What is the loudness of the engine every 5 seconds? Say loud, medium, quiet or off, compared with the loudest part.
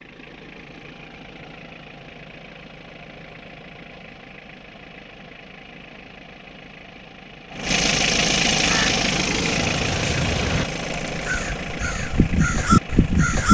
quiet, loud, medium.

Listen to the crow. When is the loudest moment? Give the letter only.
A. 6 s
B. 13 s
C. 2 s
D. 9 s
B.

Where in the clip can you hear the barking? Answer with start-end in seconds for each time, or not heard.
not heard.